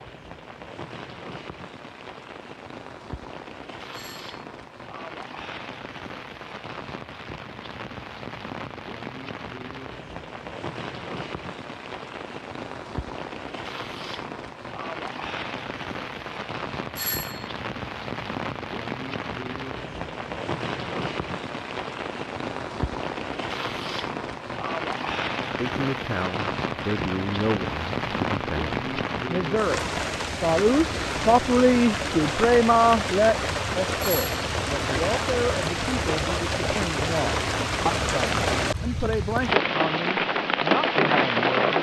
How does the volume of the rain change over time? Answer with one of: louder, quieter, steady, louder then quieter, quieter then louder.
louder.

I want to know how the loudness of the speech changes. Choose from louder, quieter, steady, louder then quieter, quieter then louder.
louder then quieter.